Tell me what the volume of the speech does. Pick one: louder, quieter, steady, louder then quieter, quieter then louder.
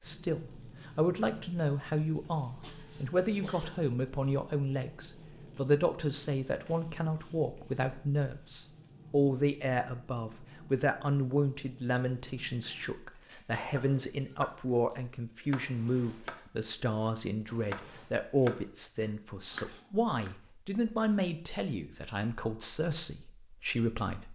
steady.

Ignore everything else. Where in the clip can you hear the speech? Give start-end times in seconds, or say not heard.
0.0-24.3.